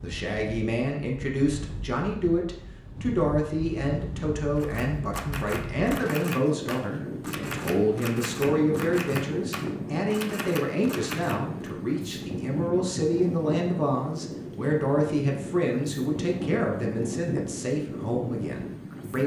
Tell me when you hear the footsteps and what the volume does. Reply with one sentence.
You can't hear the footsteps here.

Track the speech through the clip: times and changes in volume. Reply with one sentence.
The speech can be heard from 0.0 to 19.2 s, at a steady volume.